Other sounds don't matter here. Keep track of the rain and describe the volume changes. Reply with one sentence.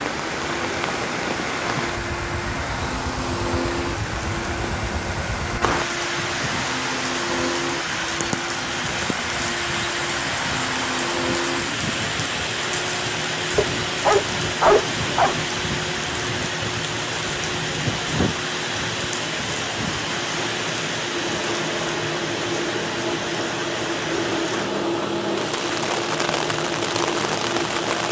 The volume of the rain stays about the same.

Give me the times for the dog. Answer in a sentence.
The dog can be heard from 13.6 to 15.4 s.